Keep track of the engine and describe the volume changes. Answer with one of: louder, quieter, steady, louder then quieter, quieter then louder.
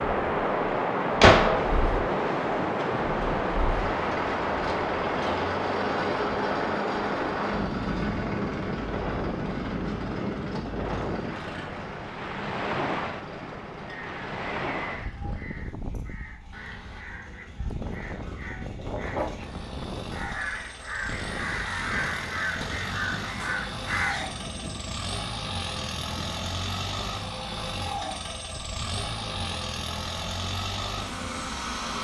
quieter then louder.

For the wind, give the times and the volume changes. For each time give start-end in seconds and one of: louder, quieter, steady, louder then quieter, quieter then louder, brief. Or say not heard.
0.0-31.9 quieter.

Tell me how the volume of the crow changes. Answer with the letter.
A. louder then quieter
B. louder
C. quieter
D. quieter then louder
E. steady
B.